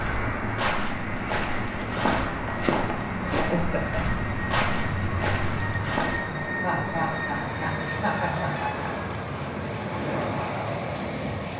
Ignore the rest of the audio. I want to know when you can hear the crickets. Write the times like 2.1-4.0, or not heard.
3.6-11.5.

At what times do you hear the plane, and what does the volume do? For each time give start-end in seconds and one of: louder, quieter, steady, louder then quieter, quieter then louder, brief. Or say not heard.
0.0-11.5 steady.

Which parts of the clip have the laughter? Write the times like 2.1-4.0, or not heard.
3.3-4.0, 6.6-8.9.